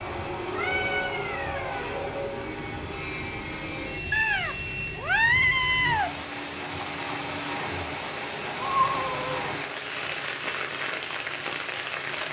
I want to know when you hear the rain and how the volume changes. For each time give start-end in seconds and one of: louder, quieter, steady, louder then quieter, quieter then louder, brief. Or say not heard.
0.0-12.2 louder.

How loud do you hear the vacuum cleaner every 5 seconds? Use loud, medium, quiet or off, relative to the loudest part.
loud, medium, medium.